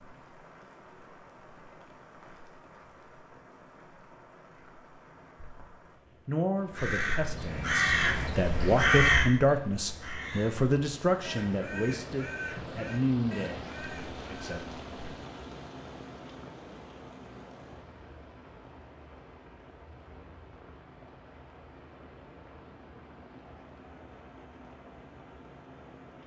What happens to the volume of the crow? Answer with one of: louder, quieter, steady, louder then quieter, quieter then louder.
quieter.